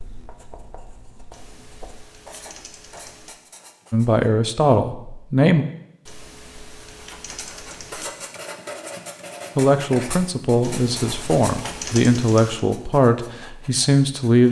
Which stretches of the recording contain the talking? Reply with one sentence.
You can hear the talking from 3.9 to 5.7 s and from 9.6 to 14.4 s.